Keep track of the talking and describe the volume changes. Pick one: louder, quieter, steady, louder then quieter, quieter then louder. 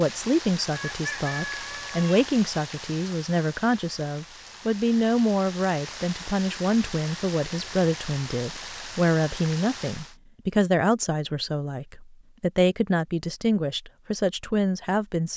steady.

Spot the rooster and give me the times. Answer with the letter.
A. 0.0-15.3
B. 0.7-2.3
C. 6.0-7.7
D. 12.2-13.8
B.